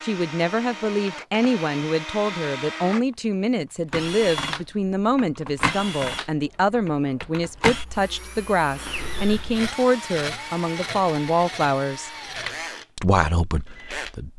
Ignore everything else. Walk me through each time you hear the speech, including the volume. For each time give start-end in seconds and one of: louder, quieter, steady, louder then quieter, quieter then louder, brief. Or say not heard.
0.0-12.1 steady
12.9-14.3 brief.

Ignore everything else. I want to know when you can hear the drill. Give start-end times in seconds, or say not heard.
0.0-14.3.